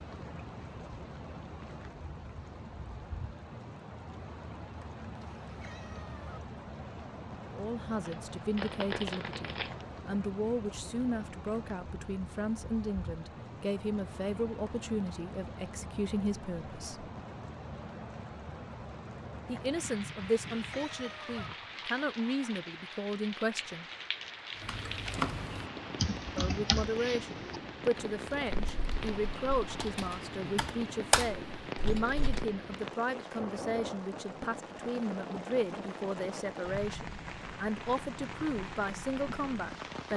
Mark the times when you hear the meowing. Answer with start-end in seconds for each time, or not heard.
5.2-6.4, 20.4-21.5.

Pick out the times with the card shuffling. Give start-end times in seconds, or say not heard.
8.1-9.8.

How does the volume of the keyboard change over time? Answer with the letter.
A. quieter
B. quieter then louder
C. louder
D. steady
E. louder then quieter
B.